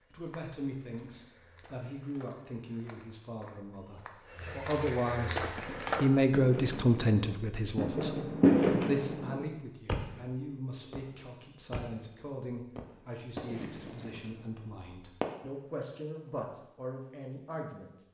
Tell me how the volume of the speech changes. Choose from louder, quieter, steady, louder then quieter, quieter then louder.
louder then quieter.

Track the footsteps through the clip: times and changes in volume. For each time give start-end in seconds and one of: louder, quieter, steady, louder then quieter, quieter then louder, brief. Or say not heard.
0.0-6.0 louder.